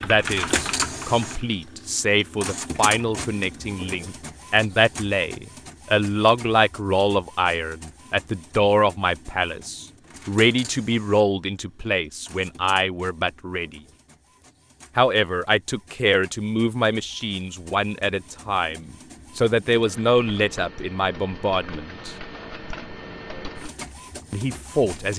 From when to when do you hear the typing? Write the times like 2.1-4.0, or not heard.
0.0-1.6.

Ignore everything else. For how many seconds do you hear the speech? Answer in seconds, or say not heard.
22 s.